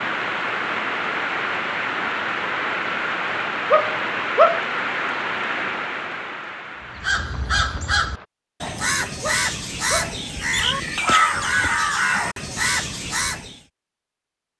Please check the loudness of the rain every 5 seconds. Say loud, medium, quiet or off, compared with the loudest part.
loud, medium, off.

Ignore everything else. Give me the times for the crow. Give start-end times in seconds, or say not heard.
6.8-13.6.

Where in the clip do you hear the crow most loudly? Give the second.
11 s.